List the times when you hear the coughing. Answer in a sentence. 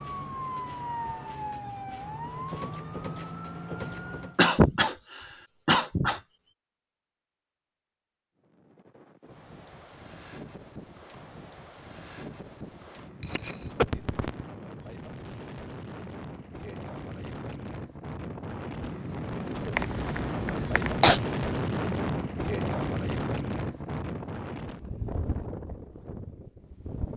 You can hear the coughing from 4.0 to 6.2 s, from 13.2 to 14.4 s and from 19.8 to 21.2 s.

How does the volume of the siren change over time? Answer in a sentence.
The volume of the siren stays about the same.